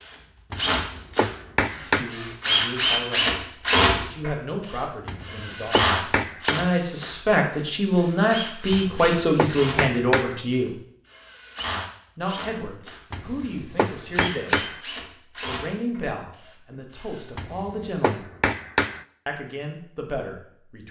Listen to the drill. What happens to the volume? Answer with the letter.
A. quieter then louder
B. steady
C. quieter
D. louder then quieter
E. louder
C.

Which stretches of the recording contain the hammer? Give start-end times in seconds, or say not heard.
0.5-2.1, 5.0-6.6, 8.7-10.4, 13.1-14.8, 17.4-19.1.